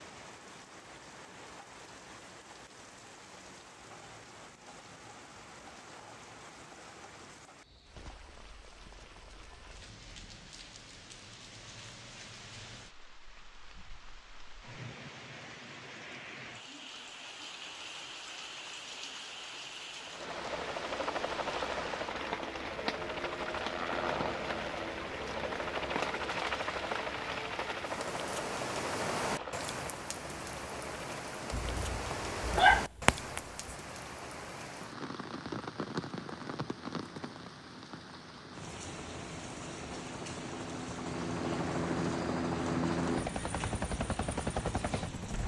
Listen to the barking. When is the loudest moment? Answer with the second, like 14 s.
33 s.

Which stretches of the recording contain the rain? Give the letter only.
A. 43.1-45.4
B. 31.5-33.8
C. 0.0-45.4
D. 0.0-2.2
C.